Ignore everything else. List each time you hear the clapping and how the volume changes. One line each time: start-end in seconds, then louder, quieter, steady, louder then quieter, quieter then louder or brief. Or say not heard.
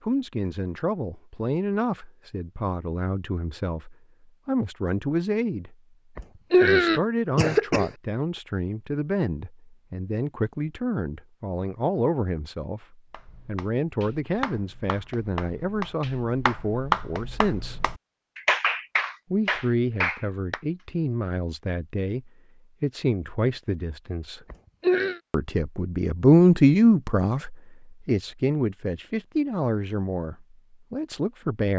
13.1-20.6 louder.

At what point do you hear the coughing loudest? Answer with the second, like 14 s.
7 s.